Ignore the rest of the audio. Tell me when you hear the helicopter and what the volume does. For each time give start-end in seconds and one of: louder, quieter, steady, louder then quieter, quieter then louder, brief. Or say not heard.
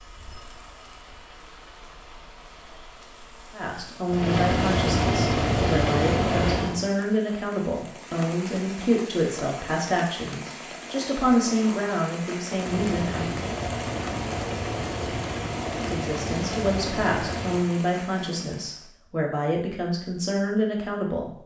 4.0-6.8 brief
12.5-17.7 steady.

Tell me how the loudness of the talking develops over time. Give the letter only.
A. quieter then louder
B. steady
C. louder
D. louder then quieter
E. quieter
B.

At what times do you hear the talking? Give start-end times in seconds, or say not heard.
3.5-13.3, 15.8-21.4.